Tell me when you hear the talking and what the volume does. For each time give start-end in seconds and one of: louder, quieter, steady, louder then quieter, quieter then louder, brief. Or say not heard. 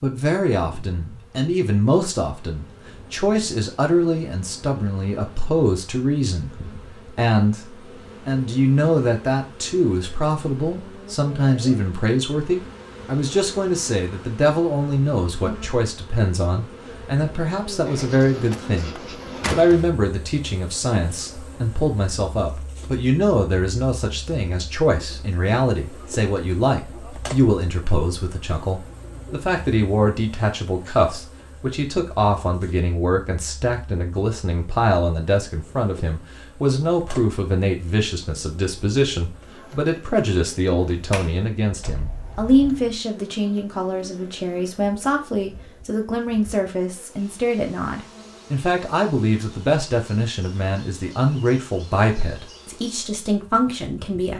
0.0-54.3 steady.